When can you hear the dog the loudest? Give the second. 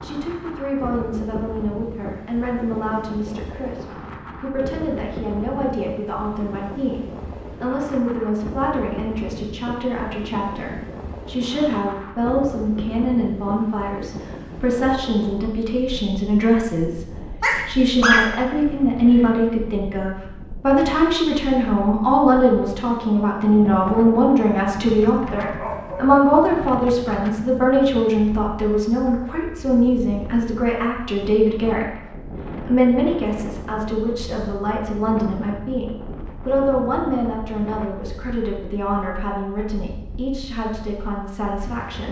18 s.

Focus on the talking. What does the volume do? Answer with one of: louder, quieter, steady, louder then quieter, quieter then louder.
louder then quieter.